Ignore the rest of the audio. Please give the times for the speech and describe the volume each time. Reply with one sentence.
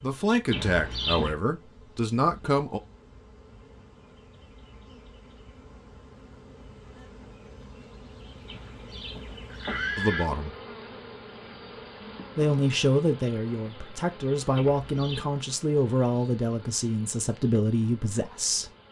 The speech can be heard briefly from 0.0 to 2.8 s; briefly from 9.9 to 10.6 s; and from 12.3 to 18.7 s, at a steady volume.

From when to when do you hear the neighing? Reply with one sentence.
The neighing can be heard from 0.5 to 1.4 s, from 8.4 to 10.2 s and from 14.6 to 15.3 s.